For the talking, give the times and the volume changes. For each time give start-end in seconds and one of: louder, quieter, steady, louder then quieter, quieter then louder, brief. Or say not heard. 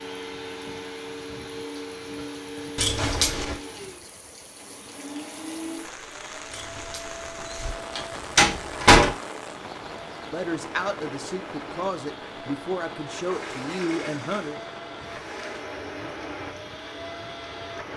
10.3-14.6 steady.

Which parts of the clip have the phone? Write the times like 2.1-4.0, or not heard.
not heard.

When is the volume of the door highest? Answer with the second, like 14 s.
9 s.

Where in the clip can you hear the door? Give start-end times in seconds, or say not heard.
2.8-3.6, 6.5-9.2, 13.1-15.7.